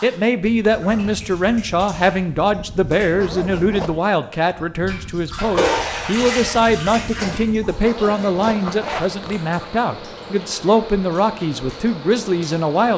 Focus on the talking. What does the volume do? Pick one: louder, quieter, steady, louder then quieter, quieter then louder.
steady.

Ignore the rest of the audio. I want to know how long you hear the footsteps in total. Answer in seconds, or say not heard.
not heard.